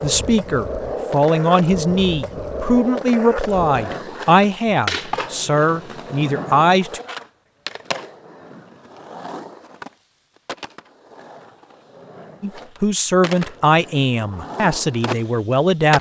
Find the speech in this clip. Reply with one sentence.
The speech can be heard from 0.0 to 7.0 s and from 12.4 to 15.9 s.